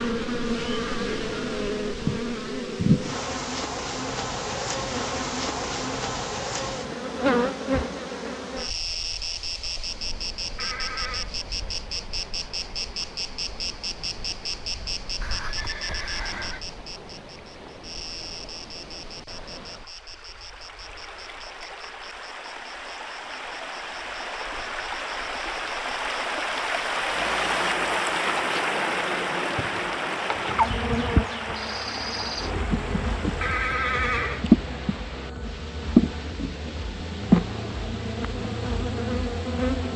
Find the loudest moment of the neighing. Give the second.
34 s.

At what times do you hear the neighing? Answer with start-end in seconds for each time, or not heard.
10.6-11.3, 15.2-16.6, 33.4-34.5.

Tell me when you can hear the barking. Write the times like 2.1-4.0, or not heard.
not heard.